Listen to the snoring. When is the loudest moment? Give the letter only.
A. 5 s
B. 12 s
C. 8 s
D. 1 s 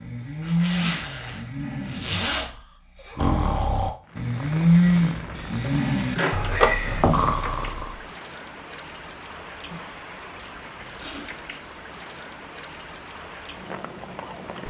A.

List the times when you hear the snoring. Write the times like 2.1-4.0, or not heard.
0.0-8.0.